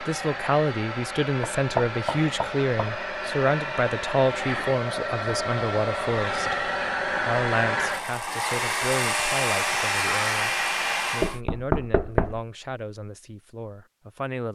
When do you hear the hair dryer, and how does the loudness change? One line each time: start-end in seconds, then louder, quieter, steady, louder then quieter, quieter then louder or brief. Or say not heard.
0.0-11.4 louder.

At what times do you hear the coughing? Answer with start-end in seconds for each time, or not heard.
not heard.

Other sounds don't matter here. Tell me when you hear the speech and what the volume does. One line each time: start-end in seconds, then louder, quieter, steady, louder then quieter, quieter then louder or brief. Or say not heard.
0.0-14.5 quieter.